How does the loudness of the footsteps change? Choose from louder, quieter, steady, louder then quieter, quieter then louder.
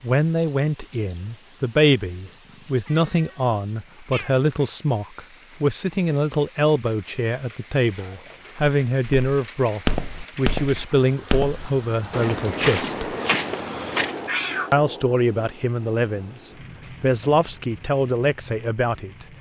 steady.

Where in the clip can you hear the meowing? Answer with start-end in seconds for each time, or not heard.
2.1-4.3, 13.5-14.7.